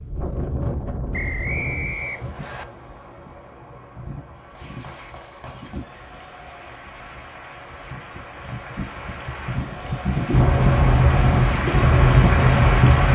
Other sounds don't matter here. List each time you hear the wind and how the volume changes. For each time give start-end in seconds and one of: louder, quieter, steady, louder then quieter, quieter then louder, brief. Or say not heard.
0.0-13.1 quieter then louder.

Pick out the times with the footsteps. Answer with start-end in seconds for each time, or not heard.
not heard.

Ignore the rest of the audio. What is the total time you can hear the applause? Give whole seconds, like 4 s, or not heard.
9 s.